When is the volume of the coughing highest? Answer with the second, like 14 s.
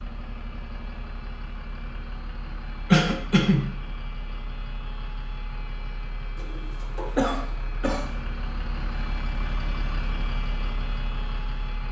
3 s.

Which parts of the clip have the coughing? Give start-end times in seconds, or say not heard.
2.9-3.6, 7.2-8.1.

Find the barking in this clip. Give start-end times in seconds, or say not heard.
not heard.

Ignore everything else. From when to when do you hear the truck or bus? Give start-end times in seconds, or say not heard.
0.0-11.8.